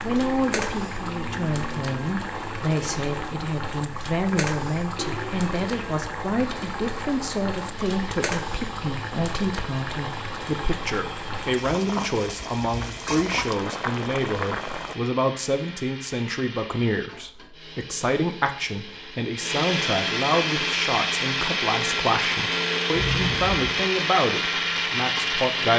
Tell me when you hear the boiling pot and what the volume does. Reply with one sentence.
The boiling pot can be heard from 0.0 to 14.9 s, at a steady volume.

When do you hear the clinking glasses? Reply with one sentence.
The clinking glasses can't be heard in this clip.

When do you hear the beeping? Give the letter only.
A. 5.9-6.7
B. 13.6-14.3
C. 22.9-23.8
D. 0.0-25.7
C.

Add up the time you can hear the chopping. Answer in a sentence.
The chopping can't be heard in this clip.